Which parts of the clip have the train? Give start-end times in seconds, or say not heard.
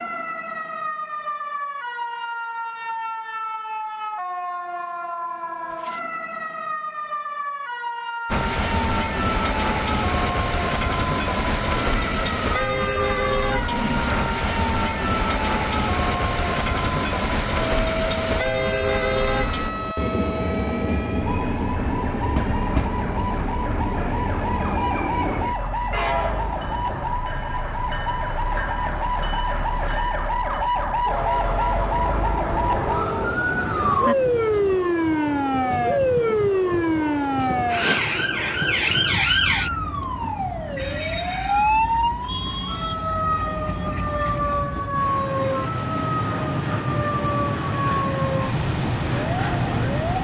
8.2-50.2.